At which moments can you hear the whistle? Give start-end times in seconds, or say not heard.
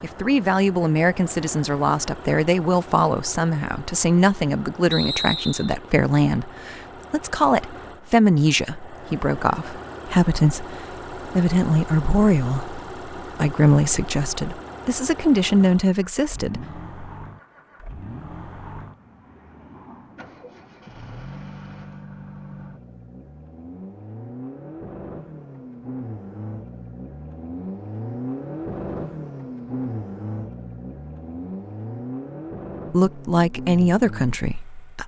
4.9-5.8.